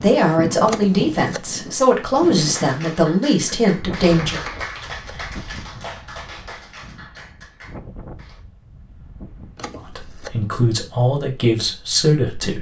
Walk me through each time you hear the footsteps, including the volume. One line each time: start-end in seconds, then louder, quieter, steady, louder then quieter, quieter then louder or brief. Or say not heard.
not heard.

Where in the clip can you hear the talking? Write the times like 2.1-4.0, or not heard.
0.0-4.4, 9.8-12.5.